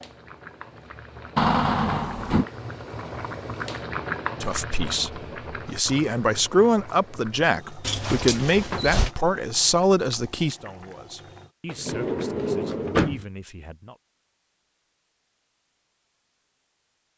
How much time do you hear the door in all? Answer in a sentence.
You can hear the door for 4 seconds altogether.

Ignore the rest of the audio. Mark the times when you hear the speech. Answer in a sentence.
The speech can be heard from 4.4 to 13.9 s.